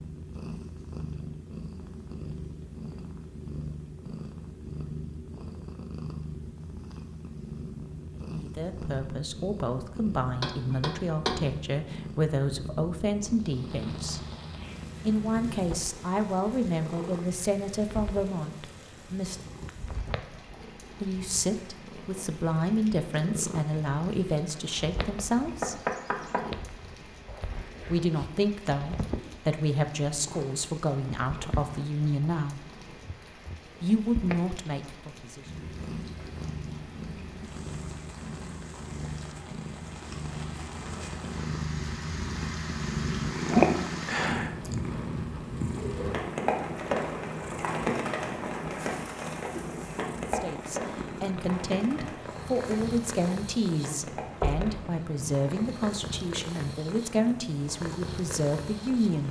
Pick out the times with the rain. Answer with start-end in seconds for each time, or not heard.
13.3-59.2.